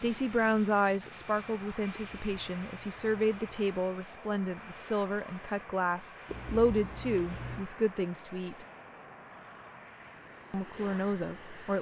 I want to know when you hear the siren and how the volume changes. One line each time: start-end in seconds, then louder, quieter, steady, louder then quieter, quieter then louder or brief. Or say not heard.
not heard.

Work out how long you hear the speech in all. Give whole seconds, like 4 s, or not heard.
10 s.